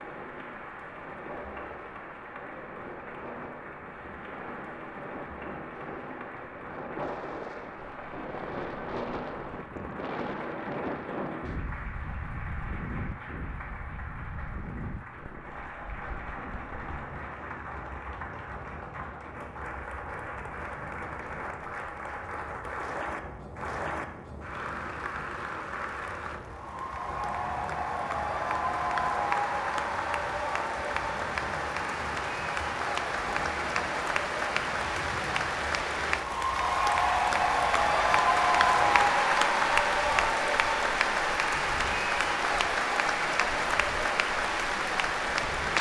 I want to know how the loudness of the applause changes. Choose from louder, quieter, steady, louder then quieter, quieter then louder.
louder.